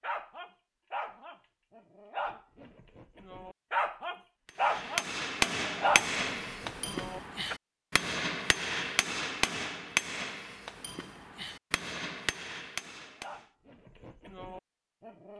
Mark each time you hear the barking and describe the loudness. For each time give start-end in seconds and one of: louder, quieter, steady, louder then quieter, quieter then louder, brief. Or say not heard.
0.0-7.5 louder
13.1-15.3 brief.